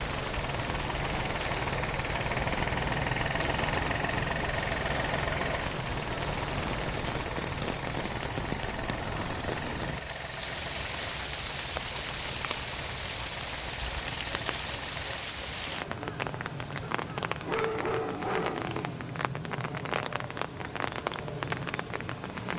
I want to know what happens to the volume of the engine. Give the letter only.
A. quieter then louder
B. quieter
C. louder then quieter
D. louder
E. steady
B.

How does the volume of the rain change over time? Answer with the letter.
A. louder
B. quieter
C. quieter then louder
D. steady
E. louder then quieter
D.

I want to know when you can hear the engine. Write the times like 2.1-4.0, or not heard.
0.0-15.4.